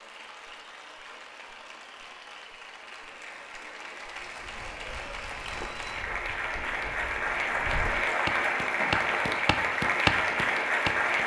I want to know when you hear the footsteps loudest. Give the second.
10 s.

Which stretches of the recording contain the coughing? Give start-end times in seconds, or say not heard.
not heard.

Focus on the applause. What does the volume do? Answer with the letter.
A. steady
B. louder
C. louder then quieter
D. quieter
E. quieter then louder
B.